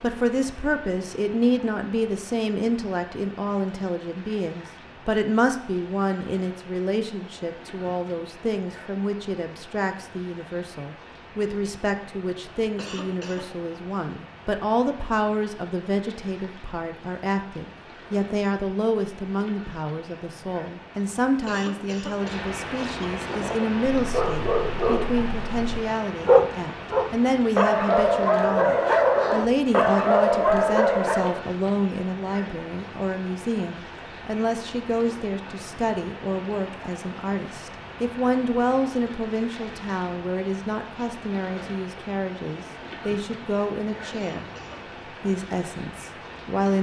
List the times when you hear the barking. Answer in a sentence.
You can hear the barking from 23.2 to 31.4 s.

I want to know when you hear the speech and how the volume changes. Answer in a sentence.
You can hear the speech from 0.0 to 44.5 s, at a steady volume; and briefly from 45.2 to 46.7 s.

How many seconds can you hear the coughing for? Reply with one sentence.
You can hear the coughing for 3 seconds altogether.